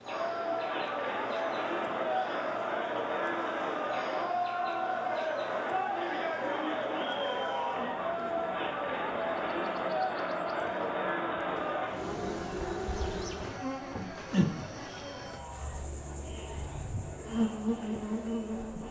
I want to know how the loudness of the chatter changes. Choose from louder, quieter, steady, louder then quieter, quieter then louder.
quieter.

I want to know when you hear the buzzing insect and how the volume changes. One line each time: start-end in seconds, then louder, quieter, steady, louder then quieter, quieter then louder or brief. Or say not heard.
0.0-18.8 louder.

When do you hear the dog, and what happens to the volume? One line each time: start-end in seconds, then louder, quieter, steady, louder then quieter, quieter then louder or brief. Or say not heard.
not heard.